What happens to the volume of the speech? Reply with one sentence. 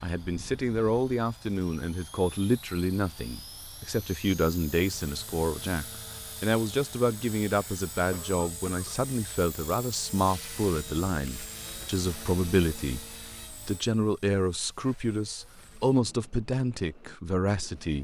The volume of the speech stays about the same.